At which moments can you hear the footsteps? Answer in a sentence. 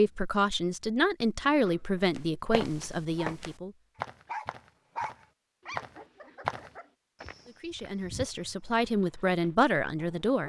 You can hear the footsteps from 2.1 to 8.6 s.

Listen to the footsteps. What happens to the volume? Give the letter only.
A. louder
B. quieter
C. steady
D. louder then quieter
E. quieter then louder
D.